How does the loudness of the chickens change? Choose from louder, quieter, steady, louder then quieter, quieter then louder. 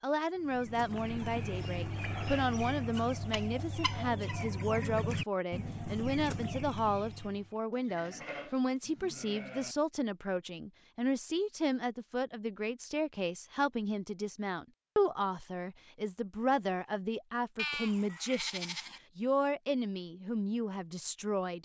steady.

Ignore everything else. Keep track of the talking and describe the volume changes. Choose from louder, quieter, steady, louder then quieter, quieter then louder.
steady.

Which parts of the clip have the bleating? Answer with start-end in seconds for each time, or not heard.
0.9-2.5, 7.7-9.8, 17.6-19.0.